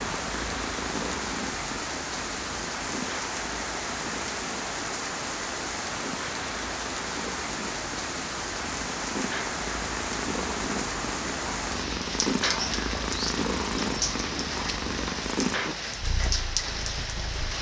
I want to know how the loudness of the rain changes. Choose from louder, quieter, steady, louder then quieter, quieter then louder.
steady.